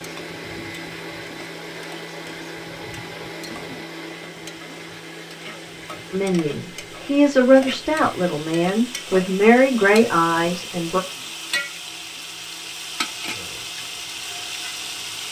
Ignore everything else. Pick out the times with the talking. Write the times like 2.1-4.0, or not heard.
6.1-11.0.